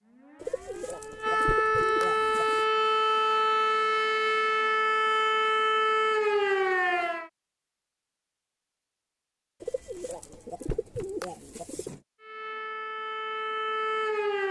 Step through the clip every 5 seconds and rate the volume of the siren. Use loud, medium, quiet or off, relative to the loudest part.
loud, loud, medium.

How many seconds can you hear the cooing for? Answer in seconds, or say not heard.
5 s.